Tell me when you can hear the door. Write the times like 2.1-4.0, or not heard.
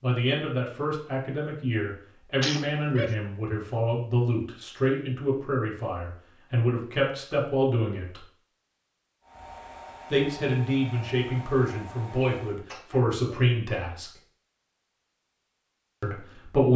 not heard.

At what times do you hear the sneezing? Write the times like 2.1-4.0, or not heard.
2.4-3.1, 12.7-13.5.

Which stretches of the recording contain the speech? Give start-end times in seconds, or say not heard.
0.0-8.2, 10.1-14.1, 16.0-16.7.